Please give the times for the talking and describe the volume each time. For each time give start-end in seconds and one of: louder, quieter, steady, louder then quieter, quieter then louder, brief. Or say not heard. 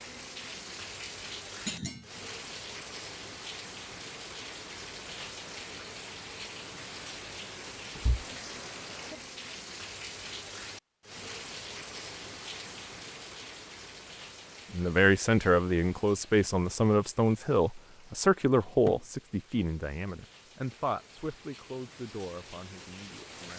14.7-23.5 quieter.